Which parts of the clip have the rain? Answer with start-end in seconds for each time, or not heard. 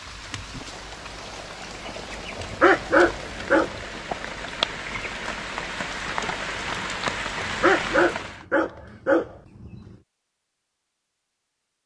0.0-8.4.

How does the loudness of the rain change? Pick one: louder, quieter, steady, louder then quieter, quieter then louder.
louder.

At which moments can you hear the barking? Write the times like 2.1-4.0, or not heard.
2.4-3.8, 7.4-9.9.